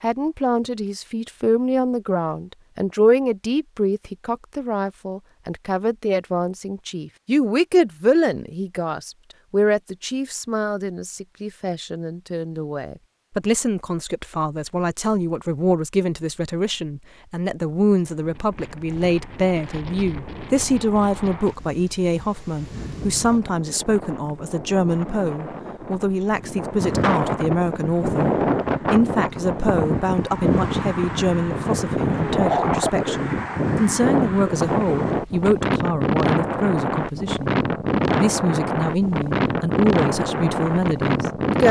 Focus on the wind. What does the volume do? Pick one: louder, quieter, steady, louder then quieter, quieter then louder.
louder.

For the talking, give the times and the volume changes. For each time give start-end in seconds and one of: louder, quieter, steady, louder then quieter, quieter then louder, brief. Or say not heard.
0.0-41.6 steady.